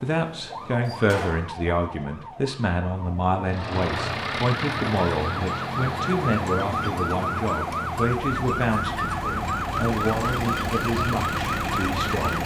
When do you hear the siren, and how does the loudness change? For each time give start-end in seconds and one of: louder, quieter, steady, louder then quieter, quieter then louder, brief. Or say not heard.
0.0-12.4 louder.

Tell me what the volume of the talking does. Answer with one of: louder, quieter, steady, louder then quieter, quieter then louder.
steady.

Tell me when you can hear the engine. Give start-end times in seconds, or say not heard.
3.5-12.4.